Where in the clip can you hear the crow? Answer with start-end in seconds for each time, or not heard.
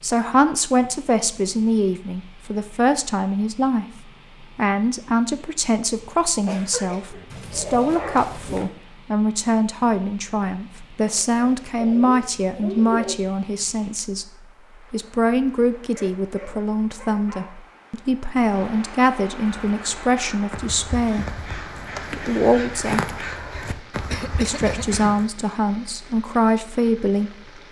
19.4-25.3.